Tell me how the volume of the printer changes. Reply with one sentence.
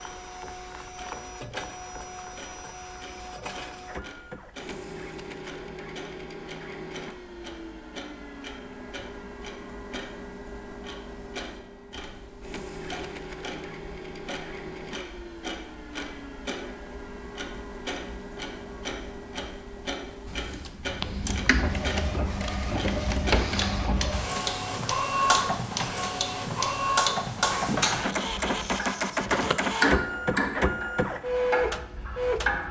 The loudness of the printer goes up.